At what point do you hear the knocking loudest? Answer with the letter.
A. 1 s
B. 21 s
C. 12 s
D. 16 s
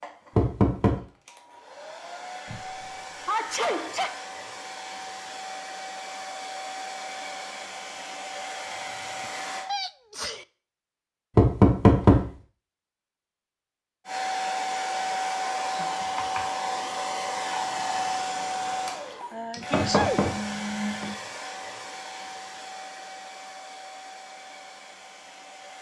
C.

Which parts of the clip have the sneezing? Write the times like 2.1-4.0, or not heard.
2.5-4.2, 9.2-10.4, 19.2-20.2.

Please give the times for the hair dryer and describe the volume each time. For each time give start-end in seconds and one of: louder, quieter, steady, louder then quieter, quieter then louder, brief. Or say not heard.
0.0-9.7 louder
14.1-25.7 quieter.